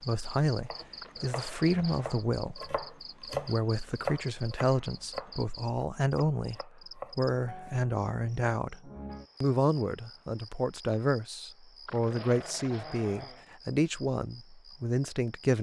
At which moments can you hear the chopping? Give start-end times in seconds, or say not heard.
0.7-7.8.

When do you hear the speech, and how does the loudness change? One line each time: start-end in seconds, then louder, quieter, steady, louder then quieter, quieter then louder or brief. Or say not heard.
0.0-15.5 steady.